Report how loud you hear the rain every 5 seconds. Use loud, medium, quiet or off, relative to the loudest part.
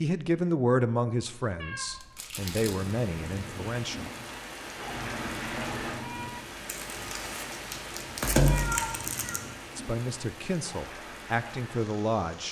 loud, loud, medium.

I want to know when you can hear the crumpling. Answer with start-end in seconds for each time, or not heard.
1.9-3.0, 6.7-9.4.